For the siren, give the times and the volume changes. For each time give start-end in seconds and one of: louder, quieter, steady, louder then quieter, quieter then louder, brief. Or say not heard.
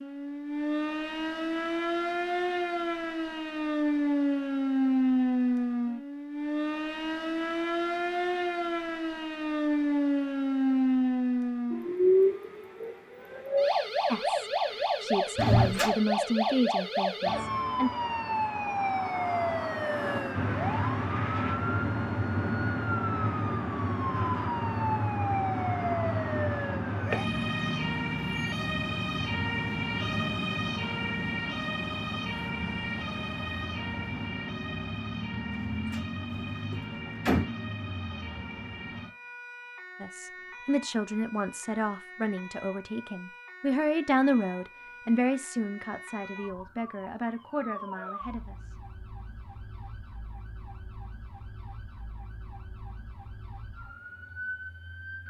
0.0-55.2 quieter.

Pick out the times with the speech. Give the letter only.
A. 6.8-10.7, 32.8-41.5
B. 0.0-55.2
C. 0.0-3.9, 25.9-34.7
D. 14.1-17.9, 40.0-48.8
D.